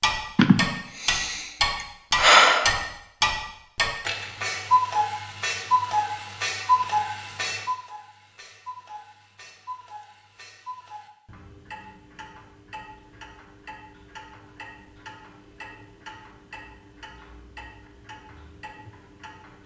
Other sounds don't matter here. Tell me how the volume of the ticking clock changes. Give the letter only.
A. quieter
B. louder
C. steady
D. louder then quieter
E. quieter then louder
A.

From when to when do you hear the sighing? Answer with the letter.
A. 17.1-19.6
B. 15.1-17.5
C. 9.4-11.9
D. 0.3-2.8
D.